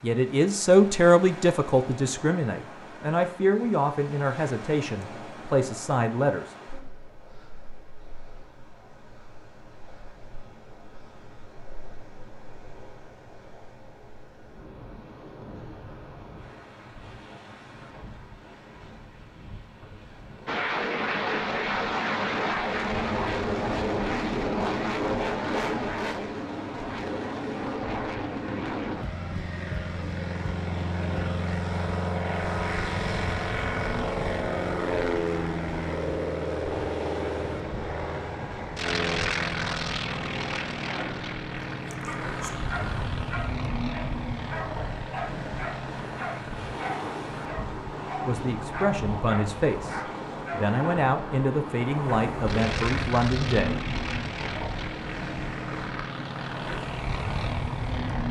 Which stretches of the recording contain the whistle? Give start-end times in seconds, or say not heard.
not heard.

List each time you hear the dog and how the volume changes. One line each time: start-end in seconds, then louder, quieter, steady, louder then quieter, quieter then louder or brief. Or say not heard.
41.8-50.6 steady.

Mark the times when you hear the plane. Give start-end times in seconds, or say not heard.
20.4-58.2.